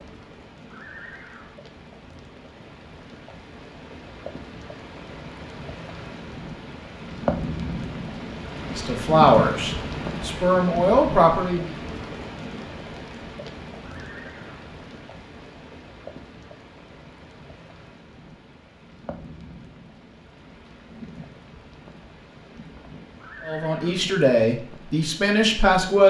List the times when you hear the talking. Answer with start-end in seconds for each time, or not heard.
8.7-11.8, 23.4-26.0.